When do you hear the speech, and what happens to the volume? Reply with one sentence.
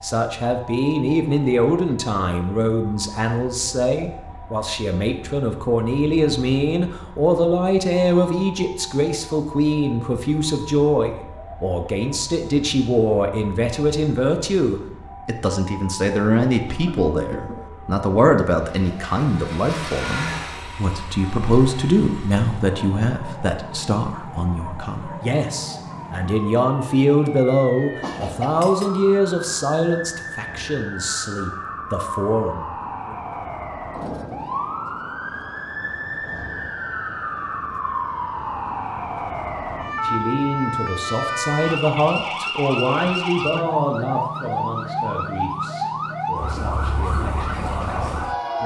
You can hear the speech from 0.0 to 33.1 s, at a steady volume; and from 39.9 to 48.6 s, getting quieter.